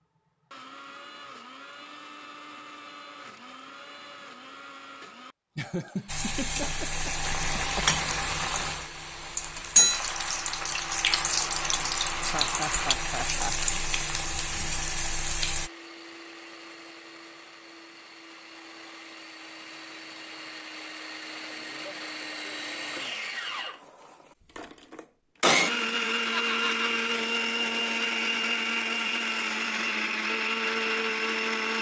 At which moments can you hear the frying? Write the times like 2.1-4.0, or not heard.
6.0-15.7.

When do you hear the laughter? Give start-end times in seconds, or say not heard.
5.5-7.9, 12.2-13.8, 26.3-26.9.